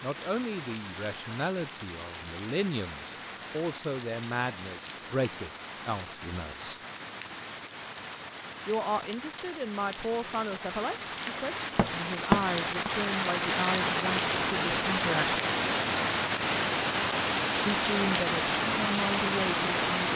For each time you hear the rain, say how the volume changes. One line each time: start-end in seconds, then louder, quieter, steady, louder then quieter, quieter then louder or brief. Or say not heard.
0.0-20.1 louder.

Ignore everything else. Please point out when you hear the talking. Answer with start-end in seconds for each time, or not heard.
0.0-6.8, 8.7-15.4, 17.6-20.1.